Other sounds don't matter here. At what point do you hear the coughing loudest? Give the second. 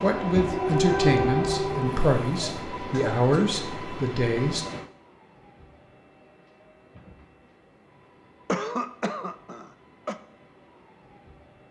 9 s.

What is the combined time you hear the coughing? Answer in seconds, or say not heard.
2 s.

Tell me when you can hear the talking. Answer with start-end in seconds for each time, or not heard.
0.0-4.7.